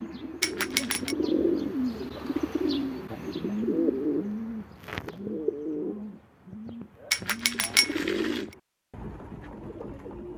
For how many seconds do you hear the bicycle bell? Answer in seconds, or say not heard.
2 s.